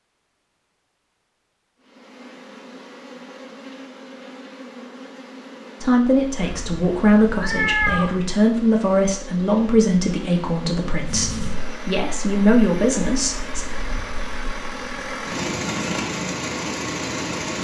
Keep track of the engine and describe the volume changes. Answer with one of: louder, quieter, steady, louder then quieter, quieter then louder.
louder.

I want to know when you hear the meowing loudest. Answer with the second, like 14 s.
8 s.